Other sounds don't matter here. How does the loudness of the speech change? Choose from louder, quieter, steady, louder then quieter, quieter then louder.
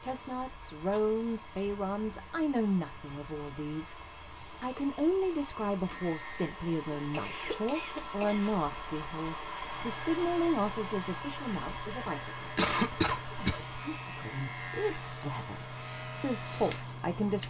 steady.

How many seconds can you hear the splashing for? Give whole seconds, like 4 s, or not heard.
not heard.